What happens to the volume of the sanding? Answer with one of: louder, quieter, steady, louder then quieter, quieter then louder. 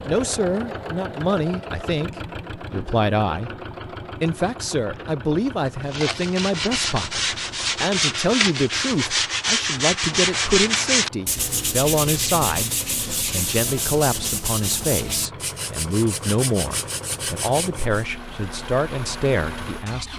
quieter.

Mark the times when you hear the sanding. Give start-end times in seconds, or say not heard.
5.9-18.1.